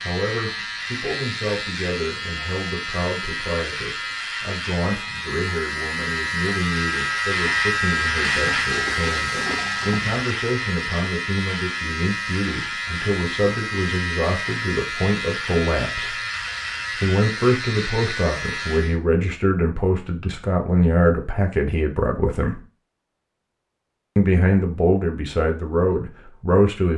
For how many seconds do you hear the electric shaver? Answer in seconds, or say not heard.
19 s.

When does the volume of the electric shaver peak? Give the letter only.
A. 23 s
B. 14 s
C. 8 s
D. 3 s
C.